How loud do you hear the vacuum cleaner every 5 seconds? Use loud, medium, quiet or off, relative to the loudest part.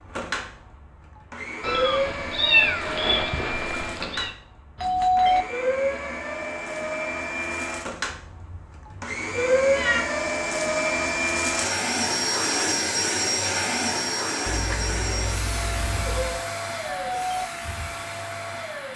medium, loud, loud, medium.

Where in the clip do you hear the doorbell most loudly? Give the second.
5 s.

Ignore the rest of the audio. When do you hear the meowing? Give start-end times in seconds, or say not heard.
1.6-4.3, 8.1-10.0, 14.4-16.4.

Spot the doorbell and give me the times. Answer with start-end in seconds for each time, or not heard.
4.8-5.5, 16.8-17.4.